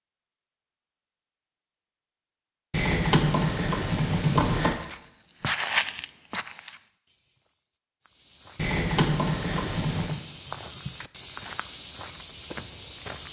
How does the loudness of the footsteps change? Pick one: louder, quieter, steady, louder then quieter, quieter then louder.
quieter then louder.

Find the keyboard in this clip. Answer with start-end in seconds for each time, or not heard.
2.7-4.8, 8.6-10.2.